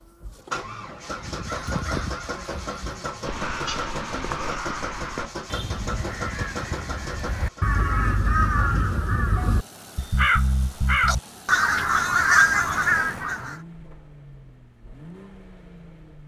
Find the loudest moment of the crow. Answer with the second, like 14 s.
12 s.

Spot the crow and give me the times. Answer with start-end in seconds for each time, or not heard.
1.1-13.6.